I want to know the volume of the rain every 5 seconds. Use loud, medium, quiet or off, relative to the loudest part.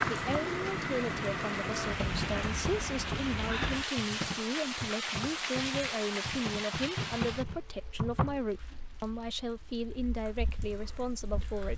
loud, medium, quiet.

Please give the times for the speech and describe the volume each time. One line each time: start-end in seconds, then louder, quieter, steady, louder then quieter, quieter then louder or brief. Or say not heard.
0.1-11.7 steady.